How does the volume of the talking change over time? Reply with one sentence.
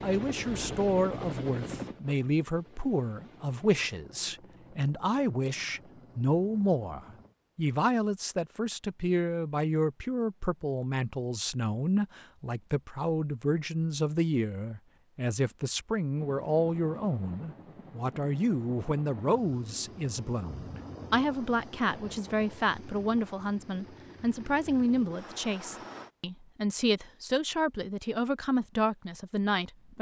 The loudness of the talking stays about the same.